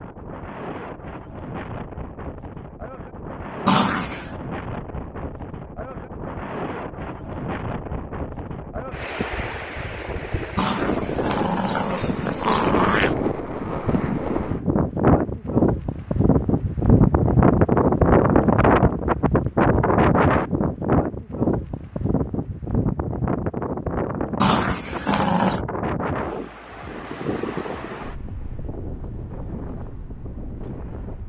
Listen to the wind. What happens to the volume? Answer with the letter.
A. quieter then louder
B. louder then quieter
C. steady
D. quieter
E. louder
B.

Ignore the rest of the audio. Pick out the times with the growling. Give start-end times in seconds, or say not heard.
3.6-4.3, 10.6-13.2, 24.4-25.6.